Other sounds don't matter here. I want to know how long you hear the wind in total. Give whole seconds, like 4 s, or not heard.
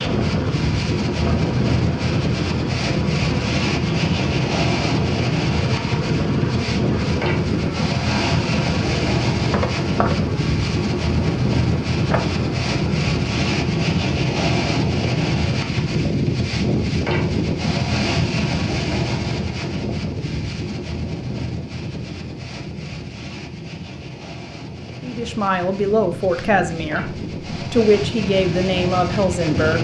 30 s.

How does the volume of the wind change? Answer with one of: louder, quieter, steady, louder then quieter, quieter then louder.
quieter.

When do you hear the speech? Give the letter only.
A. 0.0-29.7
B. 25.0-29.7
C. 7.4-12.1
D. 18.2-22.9
B.